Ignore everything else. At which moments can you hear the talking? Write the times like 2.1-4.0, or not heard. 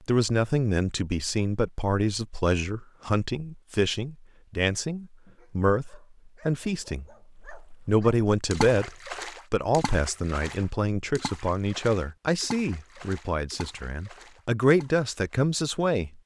0.1-7.0, 7.8-16.2.